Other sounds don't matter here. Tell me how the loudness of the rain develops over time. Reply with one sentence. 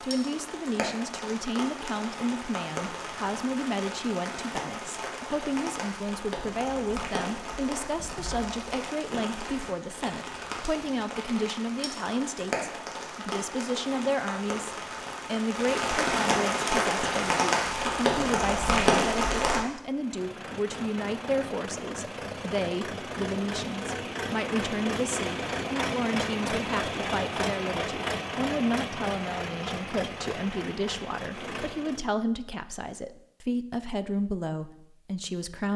The volume of the rain goes up.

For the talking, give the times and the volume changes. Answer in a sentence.
The talking can be heard from 0.0 to 35.7 s, at a steady volume.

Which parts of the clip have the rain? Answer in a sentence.
You can hear the rain from 0.0 to 19.6 s.